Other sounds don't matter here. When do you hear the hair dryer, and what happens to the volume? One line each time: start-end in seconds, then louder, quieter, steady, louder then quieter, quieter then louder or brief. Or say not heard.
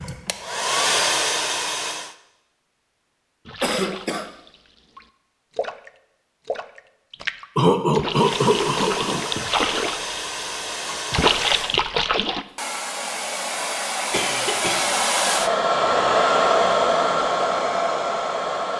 0.0-2.1 brief
8.1-18.7 louder.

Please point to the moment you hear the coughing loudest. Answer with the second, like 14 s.
8 s.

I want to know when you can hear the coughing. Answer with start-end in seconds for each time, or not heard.
3.6-4.3, 7.5-9.2, 14.1-14.9.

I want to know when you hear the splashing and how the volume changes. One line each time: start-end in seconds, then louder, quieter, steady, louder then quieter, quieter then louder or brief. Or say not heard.
3.5-12.4 louder.